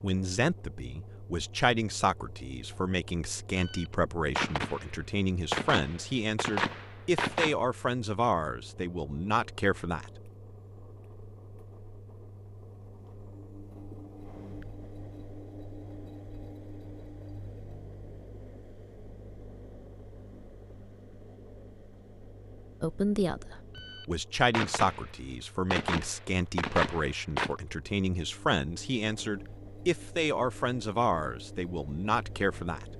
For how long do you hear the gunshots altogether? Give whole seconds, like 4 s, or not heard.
8 s.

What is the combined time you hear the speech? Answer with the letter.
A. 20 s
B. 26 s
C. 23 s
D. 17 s
A.